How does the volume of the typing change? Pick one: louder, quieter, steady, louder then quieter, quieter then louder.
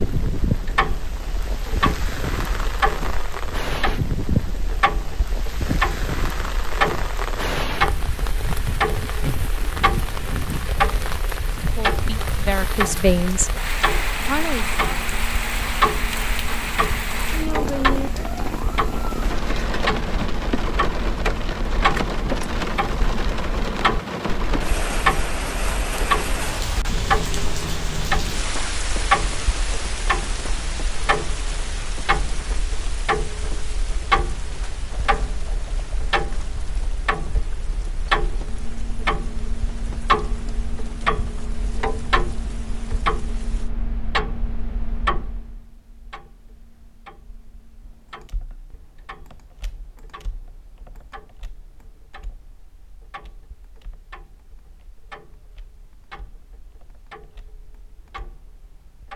quieter.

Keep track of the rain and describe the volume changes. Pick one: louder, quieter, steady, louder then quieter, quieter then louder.
quieter.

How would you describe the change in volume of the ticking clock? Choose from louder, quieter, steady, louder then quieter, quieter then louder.
quieter.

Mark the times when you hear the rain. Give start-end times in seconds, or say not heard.
0.0-43.7.